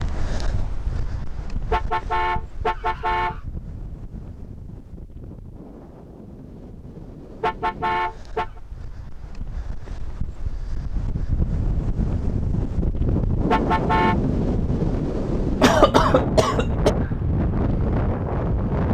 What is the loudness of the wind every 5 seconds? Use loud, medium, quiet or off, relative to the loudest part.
quiet, quiet, loud, loud.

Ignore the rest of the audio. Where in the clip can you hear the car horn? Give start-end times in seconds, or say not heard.
1.7-3.4, 7.4-8.5, 13.4-14.2.